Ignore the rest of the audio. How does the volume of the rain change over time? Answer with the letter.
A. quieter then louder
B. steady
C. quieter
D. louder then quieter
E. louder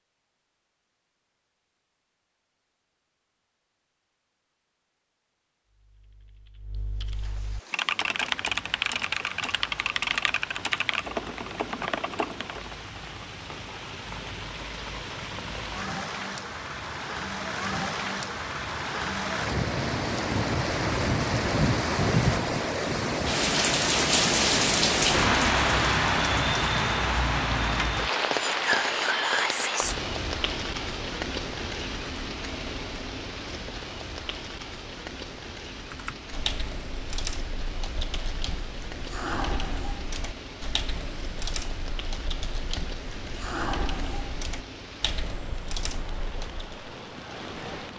D.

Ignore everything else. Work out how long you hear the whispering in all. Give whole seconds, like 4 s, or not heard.
2 s.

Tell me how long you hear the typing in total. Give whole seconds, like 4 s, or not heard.
18 s.